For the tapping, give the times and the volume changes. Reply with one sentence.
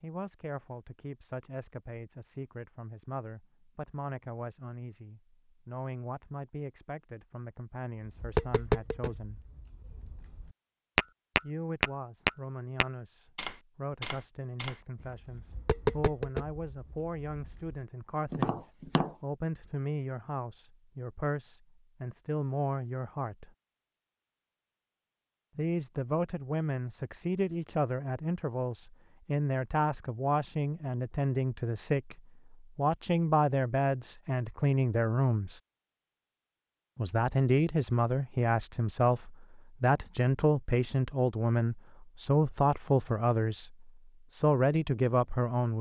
The tapping can be heard from 8.1 to 19.1 s, getting louder then quieter.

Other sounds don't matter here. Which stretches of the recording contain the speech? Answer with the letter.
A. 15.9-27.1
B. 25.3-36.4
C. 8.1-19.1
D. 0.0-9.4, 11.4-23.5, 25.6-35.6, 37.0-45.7
D.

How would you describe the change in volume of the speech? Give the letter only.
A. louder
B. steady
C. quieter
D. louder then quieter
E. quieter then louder
A.